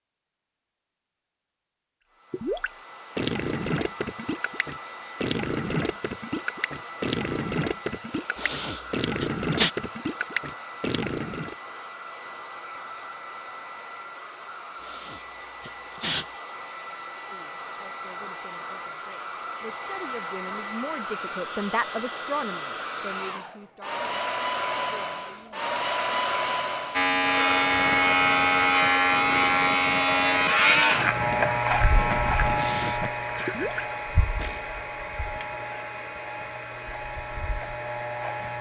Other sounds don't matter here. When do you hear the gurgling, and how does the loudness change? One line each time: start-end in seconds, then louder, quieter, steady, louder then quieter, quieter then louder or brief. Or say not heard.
2.3-11.6 steady
27.0-34.7 louder.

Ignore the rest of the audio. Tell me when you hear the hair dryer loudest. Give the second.
26 s.